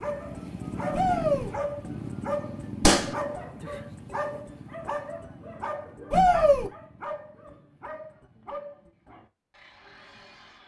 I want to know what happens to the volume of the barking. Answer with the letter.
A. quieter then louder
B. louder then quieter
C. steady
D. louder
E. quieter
E.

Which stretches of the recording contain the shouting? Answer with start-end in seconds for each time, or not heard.
0.9-1.5, 6.1-6.7.